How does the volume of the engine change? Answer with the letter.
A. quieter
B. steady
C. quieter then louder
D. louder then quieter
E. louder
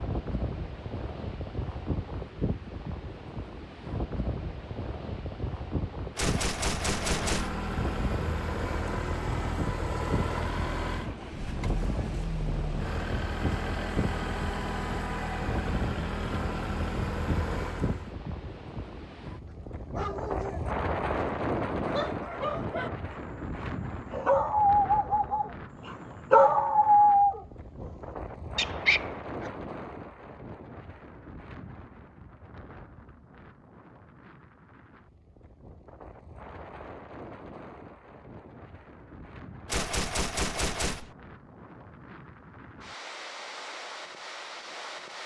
B.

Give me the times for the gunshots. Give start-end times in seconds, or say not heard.
6.2-7.6, 39.6-41.1.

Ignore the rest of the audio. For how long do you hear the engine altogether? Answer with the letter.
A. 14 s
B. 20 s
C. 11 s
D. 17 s
C.